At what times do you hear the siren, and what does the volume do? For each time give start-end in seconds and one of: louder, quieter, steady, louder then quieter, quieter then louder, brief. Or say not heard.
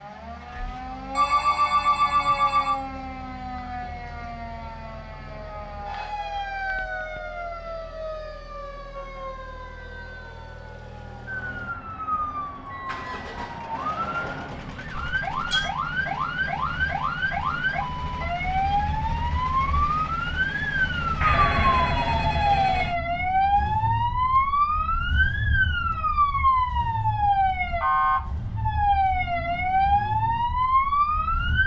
0.0-31.6 louder.